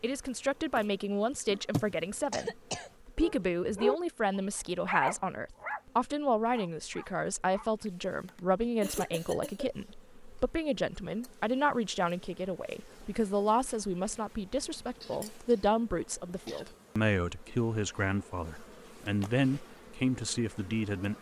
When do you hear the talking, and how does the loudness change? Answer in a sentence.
You can hear the talking from 0.0 to 21.1 s, at a steady volume.